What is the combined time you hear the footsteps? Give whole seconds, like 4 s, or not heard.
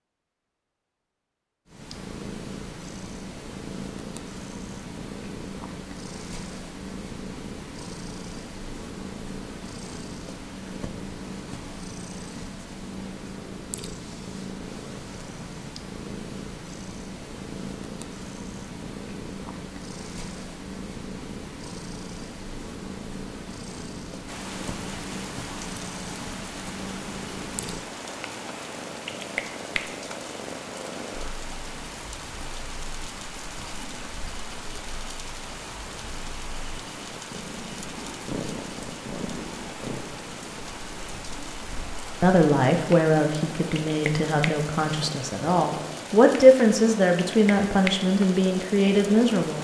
not heard.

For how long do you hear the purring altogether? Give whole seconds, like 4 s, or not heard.
48 s.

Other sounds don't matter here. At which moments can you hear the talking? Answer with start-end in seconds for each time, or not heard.
42.2-49.5.